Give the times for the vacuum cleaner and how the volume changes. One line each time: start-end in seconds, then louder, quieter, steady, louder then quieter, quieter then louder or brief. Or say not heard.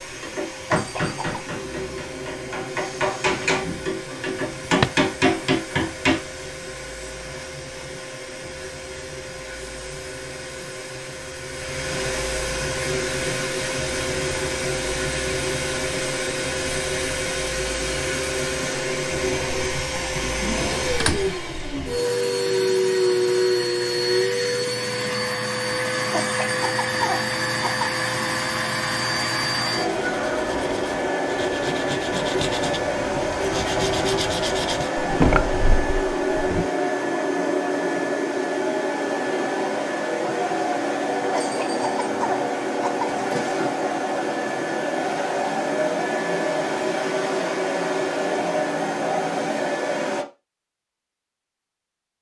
0.0-50.2 louder.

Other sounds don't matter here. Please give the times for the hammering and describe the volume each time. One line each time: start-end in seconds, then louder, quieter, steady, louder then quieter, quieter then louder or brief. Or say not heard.
0.2-6.2 quieter then louder.